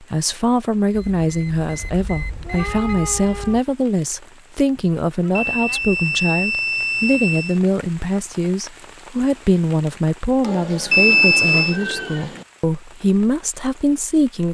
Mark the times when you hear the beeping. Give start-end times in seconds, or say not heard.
0.9-2.9, 5.3-7.6, 10.9-11.8.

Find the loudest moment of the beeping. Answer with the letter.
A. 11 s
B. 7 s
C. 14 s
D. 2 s
A.